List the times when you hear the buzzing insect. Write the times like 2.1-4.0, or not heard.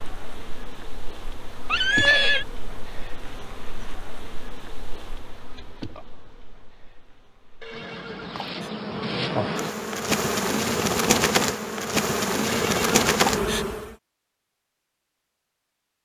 0.0-13.9.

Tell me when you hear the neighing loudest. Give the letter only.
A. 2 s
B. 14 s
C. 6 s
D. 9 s
A.